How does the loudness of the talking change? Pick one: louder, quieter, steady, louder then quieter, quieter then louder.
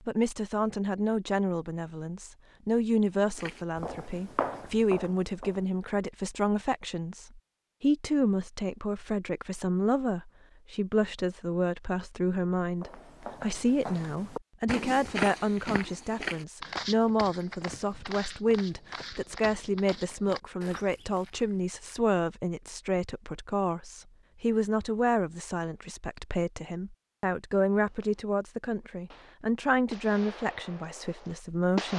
steady.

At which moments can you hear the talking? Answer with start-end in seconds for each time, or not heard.
0.1-31.9.